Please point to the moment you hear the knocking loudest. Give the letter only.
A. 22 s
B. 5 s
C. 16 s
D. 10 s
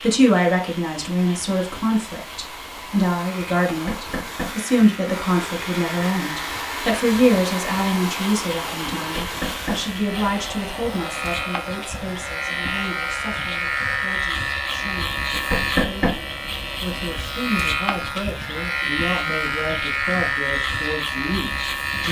C.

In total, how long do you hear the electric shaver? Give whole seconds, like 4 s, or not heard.
22 s.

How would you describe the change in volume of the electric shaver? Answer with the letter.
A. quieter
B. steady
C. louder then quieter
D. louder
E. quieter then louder
D.